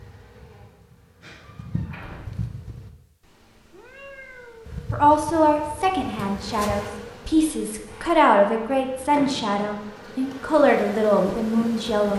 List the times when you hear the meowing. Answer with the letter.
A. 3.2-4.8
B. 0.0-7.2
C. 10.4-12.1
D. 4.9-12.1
A.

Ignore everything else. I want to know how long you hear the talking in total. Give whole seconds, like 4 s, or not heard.
7 s.